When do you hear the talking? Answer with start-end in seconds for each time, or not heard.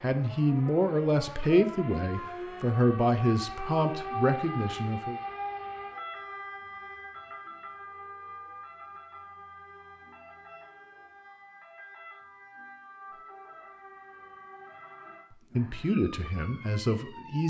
0.0-5.2, 15.6-17.4.